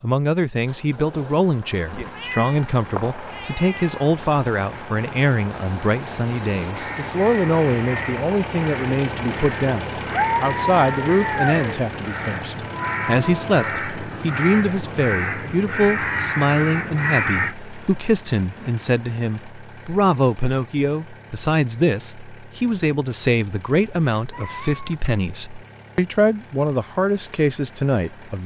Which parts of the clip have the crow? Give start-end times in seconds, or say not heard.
6.7-17.6.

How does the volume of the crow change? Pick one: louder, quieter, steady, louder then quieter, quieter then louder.
louder.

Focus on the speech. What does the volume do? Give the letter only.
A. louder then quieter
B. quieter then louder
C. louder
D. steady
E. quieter
D.